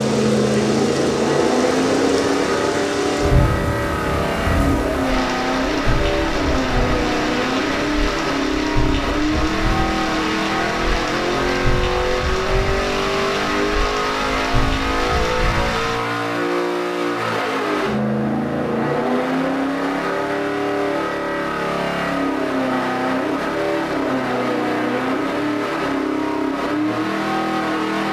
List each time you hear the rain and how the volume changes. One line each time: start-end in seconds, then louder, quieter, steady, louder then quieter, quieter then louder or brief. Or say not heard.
0.0-16.0 quieter.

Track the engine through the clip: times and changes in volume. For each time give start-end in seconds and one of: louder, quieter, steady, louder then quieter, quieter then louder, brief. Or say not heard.
0.0-28.0 steady.